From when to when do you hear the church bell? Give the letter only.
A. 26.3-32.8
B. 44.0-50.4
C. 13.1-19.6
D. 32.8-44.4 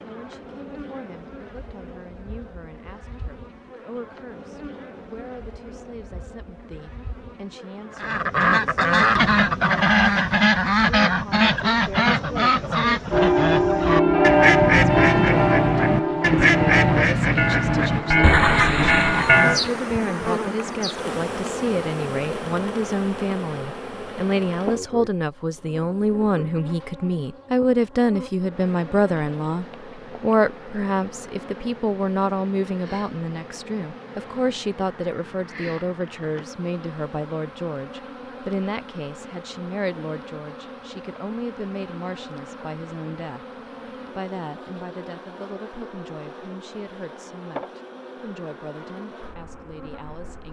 C.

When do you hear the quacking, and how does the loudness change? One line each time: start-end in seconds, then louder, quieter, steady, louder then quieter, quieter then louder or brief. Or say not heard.
8.0-19.5 steady.